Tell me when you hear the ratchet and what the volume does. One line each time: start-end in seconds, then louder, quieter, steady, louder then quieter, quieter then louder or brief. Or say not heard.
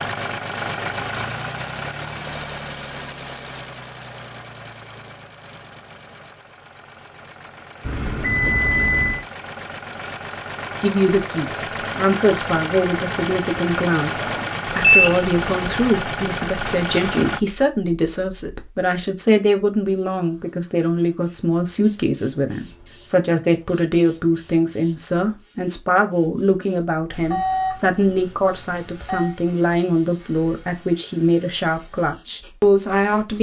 not heard.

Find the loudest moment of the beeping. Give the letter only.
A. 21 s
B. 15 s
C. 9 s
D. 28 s
B.